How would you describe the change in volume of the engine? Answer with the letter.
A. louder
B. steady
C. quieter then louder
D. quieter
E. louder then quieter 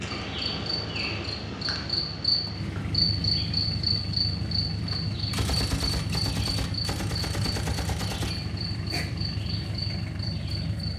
A.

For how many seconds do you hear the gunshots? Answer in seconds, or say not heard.
4 s.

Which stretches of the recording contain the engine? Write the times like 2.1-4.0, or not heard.
0.0-10.9.